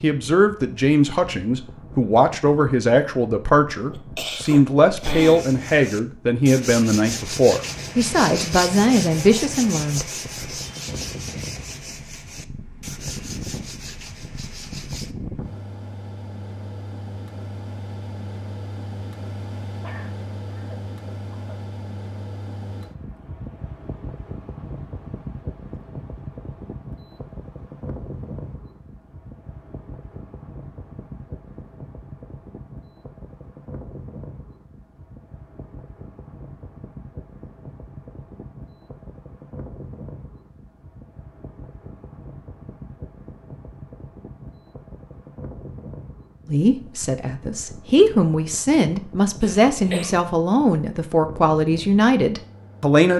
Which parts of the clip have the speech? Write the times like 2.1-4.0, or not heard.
0.0-10.1, 46.5-53.1.